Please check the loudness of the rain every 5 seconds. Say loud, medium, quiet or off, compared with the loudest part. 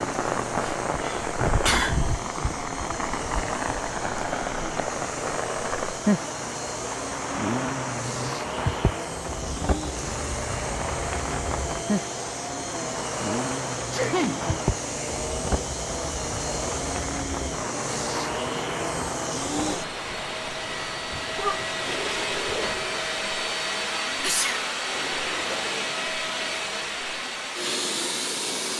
loud, loud, loud, medium, medium, off.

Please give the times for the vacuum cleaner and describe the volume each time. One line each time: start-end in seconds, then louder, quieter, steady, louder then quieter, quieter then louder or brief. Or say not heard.
0.0-28.7 louder.